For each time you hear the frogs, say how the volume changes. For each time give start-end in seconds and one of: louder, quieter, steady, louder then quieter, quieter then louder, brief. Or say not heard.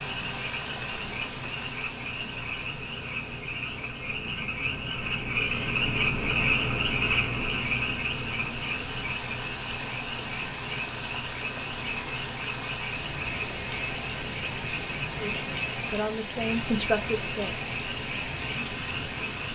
0.0-19.4 louder then quieter.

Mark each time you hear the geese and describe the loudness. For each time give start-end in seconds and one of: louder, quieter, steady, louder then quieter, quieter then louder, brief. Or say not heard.
not heard.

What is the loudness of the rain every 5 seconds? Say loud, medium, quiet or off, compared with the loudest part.
medium, medium, loud, loud.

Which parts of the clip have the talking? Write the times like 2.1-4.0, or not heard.
15.2-17.6.